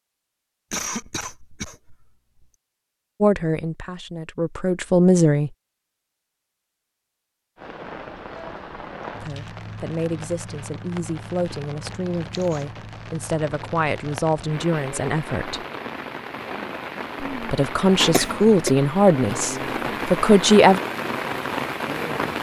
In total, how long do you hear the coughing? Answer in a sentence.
You can hear the coughing for 3 seconds altogether.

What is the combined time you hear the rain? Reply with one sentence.
You can hear the rain for 15 seconds altogether.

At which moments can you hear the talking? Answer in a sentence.
The talking can be heard from 3.2 to 5.5 s, from 9.2 to 15.6 s and from 17.3 to 20.8 s.